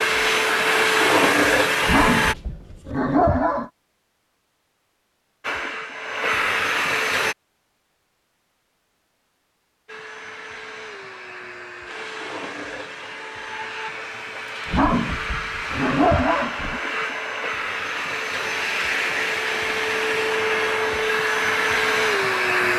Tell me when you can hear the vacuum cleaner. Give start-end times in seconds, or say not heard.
0.0-2.4, 5.4-7.3, 9.8-22.7.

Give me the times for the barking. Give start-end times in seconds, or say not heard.
1.8-3.7, 14.7-16.8.